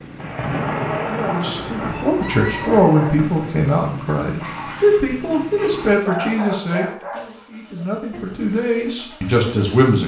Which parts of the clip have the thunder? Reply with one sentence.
The thunder can be heard from 0.1 to 3.7 s.